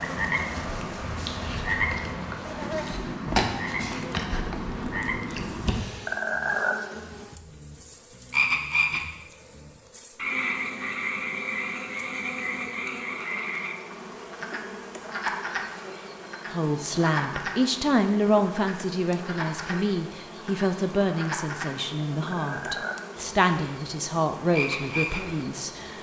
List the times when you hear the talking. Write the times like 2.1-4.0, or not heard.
16.5-25.9.